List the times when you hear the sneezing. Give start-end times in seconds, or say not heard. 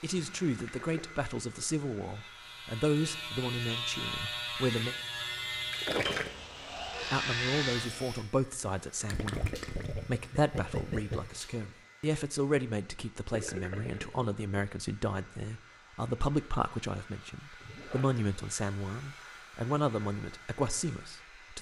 not heard.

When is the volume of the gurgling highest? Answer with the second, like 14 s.
6 s.